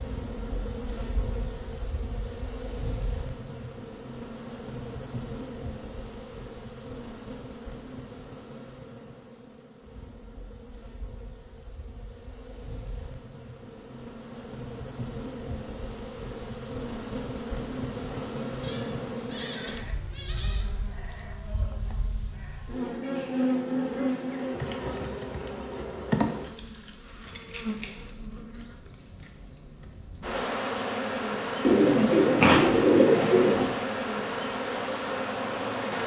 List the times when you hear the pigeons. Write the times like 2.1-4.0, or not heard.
31.6-33.6.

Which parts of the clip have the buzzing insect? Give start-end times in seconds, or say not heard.
0.0-36.0.